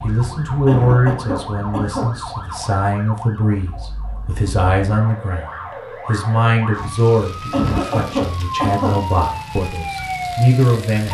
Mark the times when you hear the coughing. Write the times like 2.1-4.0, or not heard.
0.7-2.1, 7.5-9.0.